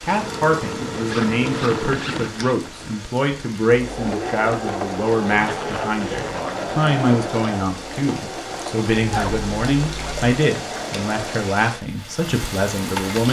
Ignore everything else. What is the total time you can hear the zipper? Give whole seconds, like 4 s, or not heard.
4 s.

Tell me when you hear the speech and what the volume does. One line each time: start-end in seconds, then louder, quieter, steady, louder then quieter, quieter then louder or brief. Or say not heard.
0.0-13.2 steady.